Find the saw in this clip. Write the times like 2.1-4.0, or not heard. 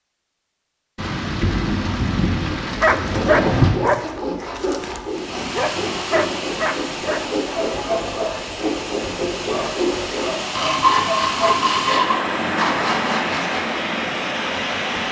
2.8-13.8.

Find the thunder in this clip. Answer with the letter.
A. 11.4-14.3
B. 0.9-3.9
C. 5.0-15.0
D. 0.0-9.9
B.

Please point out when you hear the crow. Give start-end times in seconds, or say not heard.
not heard.